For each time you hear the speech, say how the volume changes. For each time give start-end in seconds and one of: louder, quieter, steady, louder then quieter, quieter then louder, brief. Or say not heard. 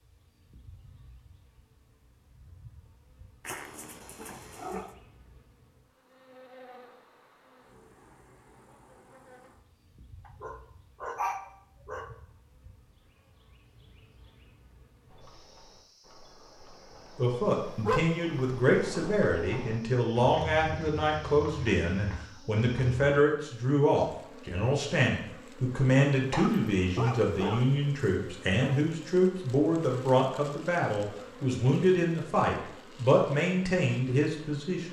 17.1-34.8 steady.